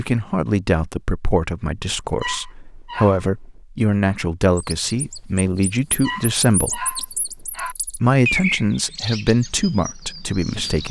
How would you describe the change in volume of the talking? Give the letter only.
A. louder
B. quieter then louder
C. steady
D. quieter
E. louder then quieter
C.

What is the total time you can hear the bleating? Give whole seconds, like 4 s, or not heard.
not heard.